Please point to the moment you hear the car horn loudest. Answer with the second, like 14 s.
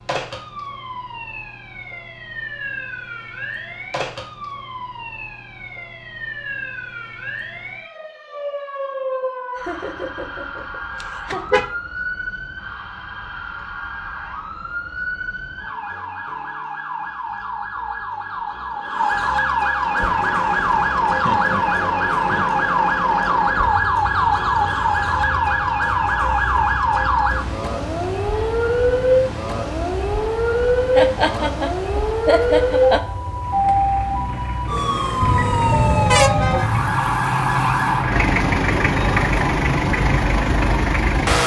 36 s.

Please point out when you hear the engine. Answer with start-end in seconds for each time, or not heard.
19.8-41.4.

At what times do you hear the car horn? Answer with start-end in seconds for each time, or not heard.
11.0-11.7, 35.2-37.0.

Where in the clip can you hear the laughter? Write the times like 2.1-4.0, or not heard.
9.6-11.4, 21.1-22.6, 30.9-33.0.